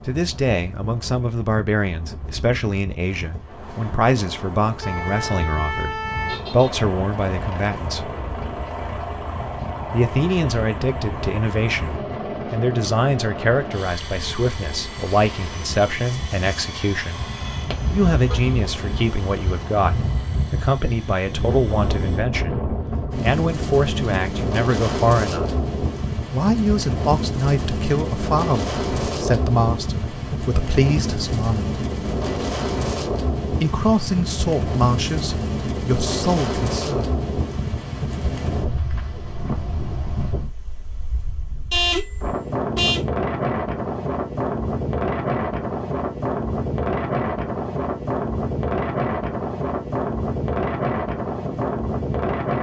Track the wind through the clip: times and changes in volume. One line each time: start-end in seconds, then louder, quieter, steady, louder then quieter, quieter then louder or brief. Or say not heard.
0.0-52.5 louder.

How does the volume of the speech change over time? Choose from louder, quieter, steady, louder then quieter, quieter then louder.
steady.